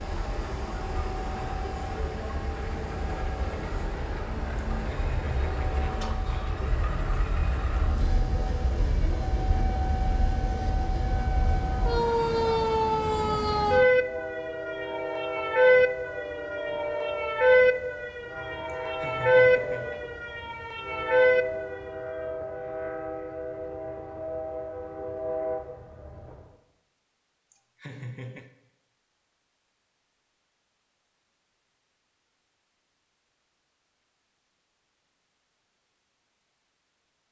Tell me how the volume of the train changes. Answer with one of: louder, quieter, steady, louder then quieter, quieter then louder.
steady.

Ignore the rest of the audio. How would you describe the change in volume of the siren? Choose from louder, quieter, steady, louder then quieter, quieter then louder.
louder.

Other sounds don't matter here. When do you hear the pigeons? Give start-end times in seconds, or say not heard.
not heard.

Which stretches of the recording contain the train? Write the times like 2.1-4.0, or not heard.
0.0-26.6.